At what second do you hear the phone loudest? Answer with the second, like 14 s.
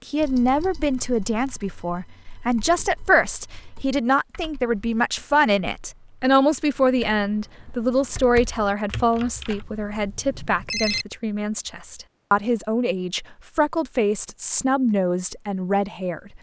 11 s.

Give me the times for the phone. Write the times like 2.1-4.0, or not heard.
9.4-11.1.